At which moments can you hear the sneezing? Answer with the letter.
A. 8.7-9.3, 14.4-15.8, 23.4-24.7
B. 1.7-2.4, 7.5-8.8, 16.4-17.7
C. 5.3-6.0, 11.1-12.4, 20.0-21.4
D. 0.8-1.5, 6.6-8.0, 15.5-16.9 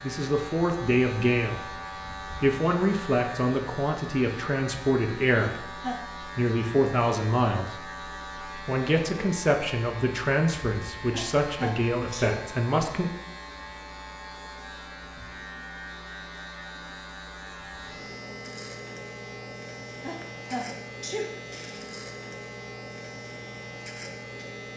C.